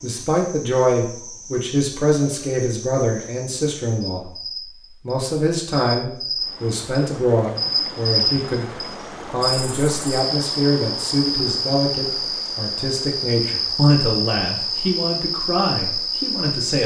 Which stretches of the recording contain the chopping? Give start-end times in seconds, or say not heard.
not heard.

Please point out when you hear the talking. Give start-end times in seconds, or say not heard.
0.0-4.3, 5.0-8.7, 9.3-16.8.